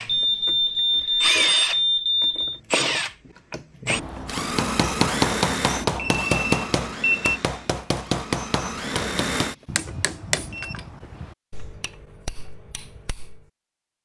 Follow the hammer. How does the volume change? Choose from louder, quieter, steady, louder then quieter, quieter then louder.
quieter.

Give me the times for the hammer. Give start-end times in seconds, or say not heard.
4.3-13.4.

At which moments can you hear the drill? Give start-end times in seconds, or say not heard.
0.0-9.9.